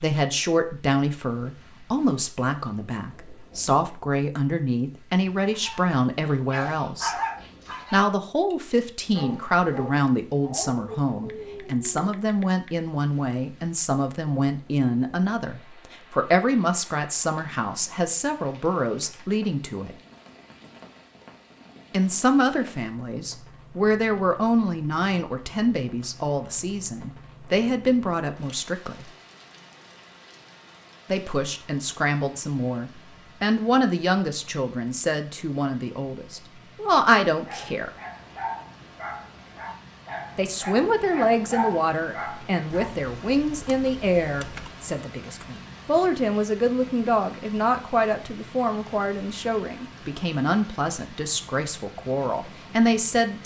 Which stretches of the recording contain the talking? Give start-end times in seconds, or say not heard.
0.0-7.2, 7.9-19.9, 21.9-29.1, 31.1-37.9, 40.4-53.4.